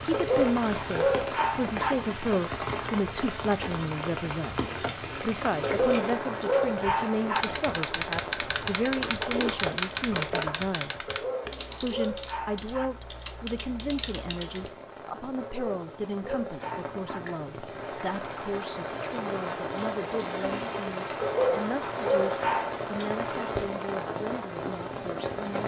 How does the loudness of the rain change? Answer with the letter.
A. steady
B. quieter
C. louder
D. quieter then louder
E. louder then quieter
D.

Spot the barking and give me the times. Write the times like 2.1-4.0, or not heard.
0.1-1.9, 5.6-7.5, 11.1-12.9, 15.4-17.2, 21.2-22.8.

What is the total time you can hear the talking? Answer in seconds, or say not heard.
25 s.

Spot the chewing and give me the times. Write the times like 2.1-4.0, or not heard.
4.6-6.0, 9.0-10.8, 19.6-21.2.